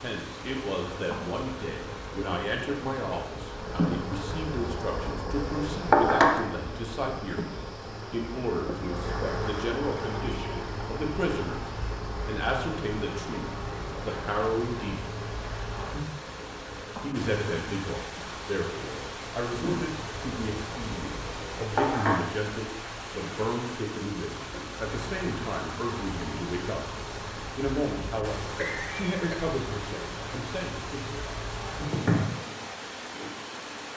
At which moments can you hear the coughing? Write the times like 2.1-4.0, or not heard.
28.6-29.5.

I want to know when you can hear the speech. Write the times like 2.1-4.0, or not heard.
0.0-11.7, 12.2-15.1, 17.0-26.8, 27.6-31.2.